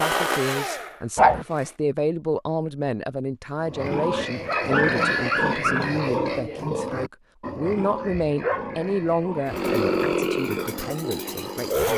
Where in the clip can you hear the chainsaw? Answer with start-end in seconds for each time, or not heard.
0.0-1.8, 9.4-11.9.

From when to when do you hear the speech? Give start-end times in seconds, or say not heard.
0.0-11.9.